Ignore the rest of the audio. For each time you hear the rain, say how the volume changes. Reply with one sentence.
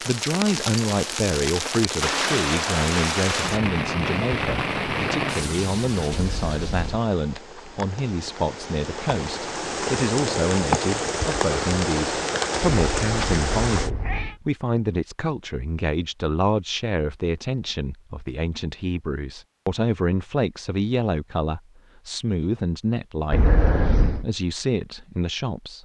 The rain can be heard from 0.0 to 13.9 s, getting quieter then louder.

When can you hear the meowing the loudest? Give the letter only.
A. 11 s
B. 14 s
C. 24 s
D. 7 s
C.